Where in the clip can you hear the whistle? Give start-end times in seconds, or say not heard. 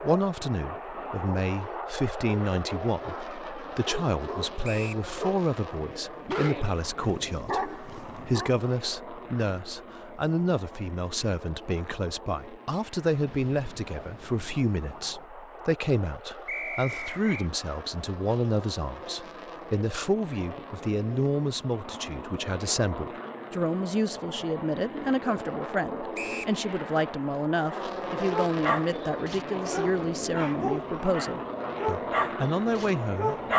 4.6-5.0, 16.4-17.5, 26.1-26.6.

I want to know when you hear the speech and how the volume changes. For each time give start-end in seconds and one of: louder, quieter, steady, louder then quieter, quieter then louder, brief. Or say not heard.
0.0-33.4 steady.